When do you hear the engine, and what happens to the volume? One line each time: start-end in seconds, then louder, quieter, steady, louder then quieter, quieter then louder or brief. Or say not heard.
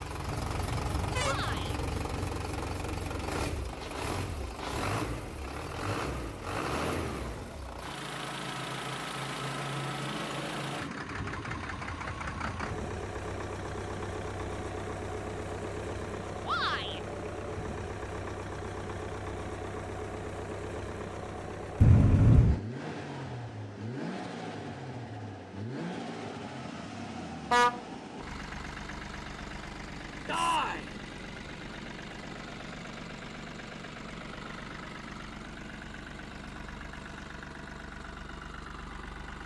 0.0-39.4 quieter.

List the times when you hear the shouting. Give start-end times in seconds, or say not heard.
1.2-1.8, 16.4-17.0, 30.2-30.9.